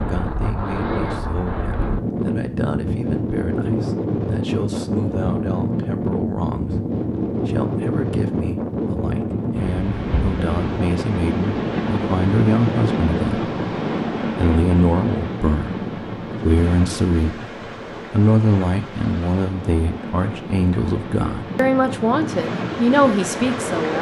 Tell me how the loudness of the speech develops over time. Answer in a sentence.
The volume of the speech goes up.